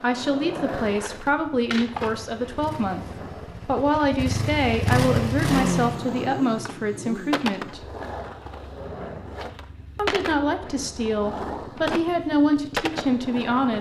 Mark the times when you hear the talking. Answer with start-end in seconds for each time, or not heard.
0.0-7.8, 9.9-13.7.